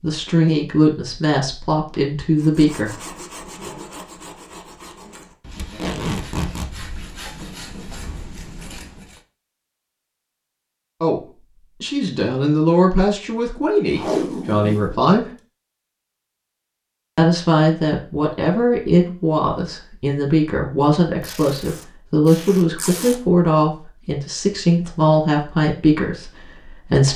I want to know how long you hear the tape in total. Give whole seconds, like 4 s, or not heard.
4 s.